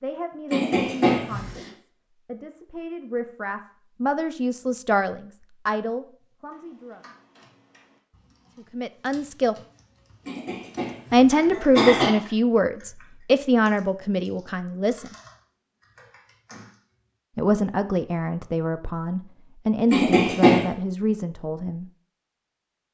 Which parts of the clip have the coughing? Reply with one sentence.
The coughing can be heard from 0.5 to 1.7 s, from 10.2 to 12.1 s and from 19.9 to 20.7 s.